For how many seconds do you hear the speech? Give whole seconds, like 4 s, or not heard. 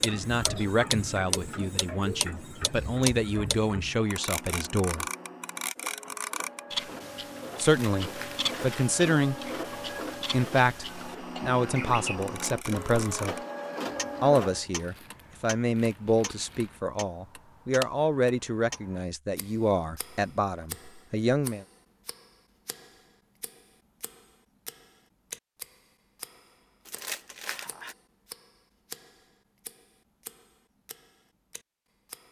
17 s.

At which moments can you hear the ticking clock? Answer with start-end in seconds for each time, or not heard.
0.0-32.2.